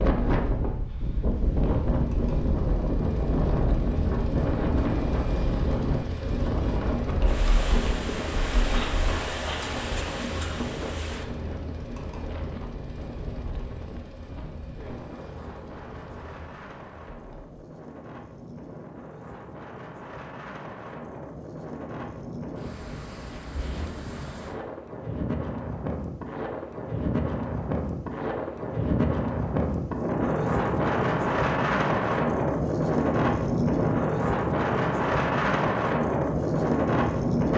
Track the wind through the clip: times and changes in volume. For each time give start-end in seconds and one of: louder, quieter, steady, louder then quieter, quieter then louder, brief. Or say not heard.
0.0-37.5 quieter then louder.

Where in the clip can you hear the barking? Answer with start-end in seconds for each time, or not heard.
not heard.